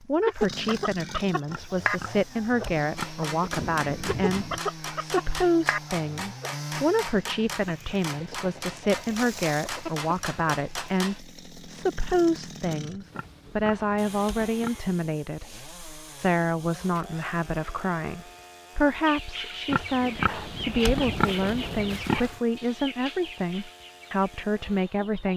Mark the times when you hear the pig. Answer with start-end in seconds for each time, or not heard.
1.4-3.2, 13.1-14.8, 19.6-22.4.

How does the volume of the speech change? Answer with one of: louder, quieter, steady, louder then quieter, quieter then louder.
steady.